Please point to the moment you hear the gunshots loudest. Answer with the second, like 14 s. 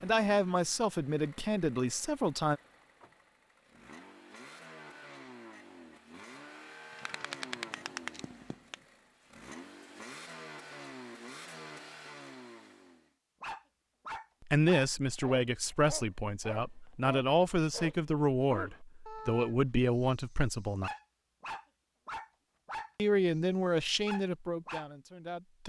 7 s.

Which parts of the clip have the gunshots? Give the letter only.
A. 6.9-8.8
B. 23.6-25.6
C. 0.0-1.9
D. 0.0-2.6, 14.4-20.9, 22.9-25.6
A.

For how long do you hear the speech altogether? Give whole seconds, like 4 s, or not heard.
12 s.